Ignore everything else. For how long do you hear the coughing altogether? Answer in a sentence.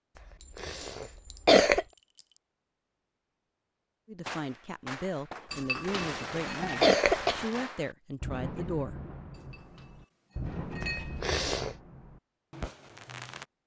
You can hear the coughing for 4 seconds altogether.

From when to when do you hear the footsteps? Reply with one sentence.
You can't hear the footsteps here.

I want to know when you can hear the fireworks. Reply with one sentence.
The fireworks can be heard from 4.2 to 13.4 s.